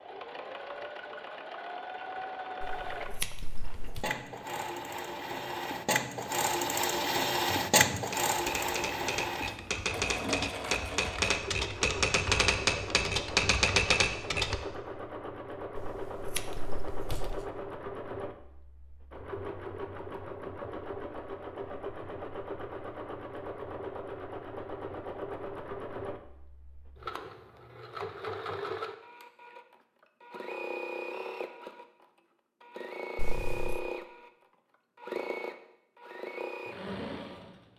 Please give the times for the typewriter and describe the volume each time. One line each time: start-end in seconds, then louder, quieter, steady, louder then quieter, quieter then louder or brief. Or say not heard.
7.7-14.6 louder.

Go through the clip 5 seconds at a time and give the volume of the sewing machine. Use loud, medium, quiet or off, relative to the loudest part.
medium, loud, medium, medium, medium, medium, medium, medium.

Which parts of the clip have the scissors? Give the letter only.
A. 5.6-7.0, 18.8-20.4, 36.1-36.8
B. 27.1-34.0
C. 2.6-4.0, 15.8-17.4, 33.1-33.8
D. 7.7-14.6
C.